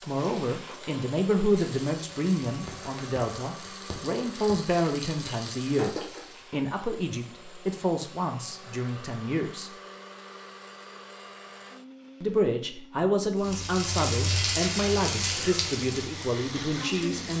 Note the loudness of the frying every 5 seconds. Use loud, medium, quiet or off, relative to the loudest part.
quiet, medium, loud, loud.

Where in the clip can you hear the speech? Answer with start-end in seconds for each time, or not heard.
0.0-9.7, 12.2-17.3.